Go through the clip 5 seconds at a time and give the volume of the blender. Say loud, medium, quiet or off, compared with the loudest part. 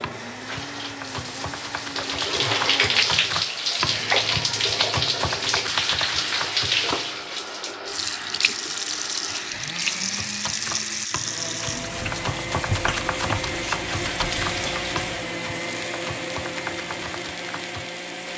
medium, medium, loud, loud.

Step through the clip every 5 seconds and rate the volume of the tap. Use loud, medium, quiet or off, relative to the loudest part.
loud, loud, medium, quiet.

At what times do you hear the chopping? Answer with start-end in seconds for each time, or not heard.
0.0-7.0, 10.0-17.9.